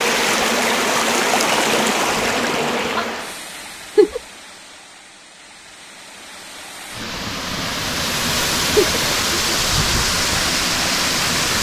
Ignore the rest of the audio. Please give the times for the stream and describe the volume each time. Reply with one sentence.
The stream can be heard from 0.0 to 11.5 s, getting quieter then louder.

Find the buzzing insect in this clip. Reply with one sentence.
The buzzing insect can be heard from 0.0 to 3.4 s.